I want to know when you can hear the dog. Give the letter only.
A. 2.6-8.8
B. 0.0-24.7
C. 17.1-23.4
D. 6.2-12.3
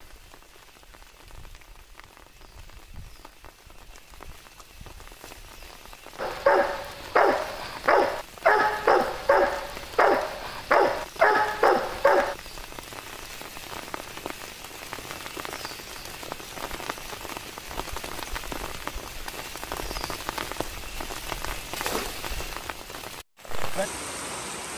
D.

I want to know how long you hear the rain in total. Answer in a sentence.
You can hear the rain for 25 seconds altogether.